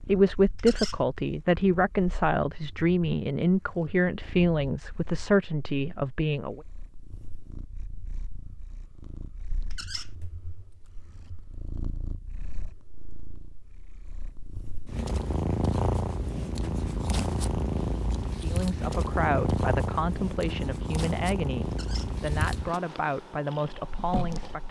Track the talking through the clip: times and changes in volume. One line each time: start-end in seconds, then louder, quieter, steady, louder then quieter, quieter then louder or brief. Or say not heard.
0.0-6.6 steady
18.4-24.6 steady.